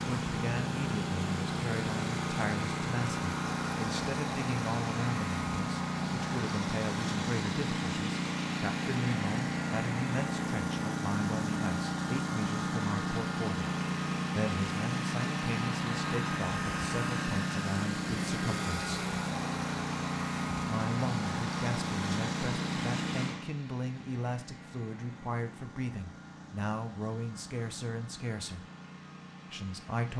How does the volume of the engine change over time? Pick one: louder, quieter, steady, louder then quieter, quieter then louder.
quieter.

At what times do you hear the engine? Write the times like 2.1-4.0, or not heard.
0.0-30.1.